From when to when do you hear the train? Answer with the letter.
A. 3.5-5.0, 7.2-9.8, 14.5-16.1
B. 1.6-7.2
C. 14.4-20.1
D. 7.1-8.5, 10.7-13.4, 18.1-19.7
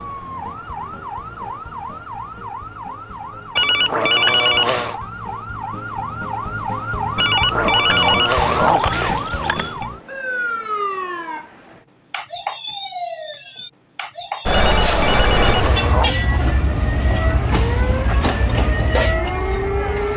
C.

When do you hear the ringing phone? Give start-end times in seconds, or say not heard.
3.5-5.0, 7.2-9.8, 14.5-16.1.